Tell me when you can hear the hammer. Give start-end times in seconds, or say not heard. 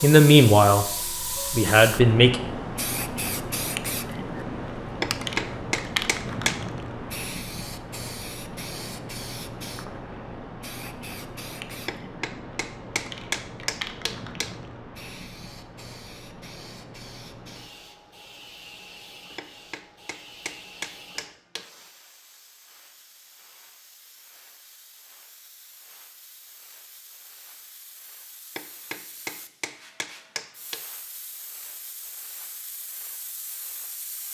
5.0-6.7, 11.8-14.6, 19.4-21.7, 28.6-30.9.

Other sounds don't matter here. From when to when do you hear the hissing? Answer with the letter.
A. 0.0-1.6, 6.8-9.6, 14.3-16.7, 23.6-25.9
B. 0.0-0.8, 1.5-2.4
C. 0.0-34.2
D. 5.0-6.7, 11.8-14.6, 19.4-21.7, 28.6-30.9
C.